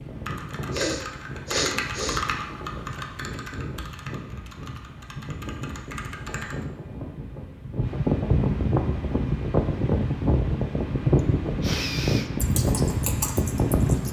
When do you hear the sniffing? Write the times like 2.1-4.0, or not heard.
0.7-2.2, 11.2-12.3.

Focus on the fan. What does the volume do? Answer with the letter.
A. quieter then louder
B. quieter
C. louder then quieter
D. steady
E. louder
E.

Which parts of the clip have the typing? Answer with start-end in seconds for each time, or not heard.
0.0-6.7, 12.3-14.0.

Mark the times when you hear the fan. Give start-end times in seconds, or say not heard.
0.0-14.0.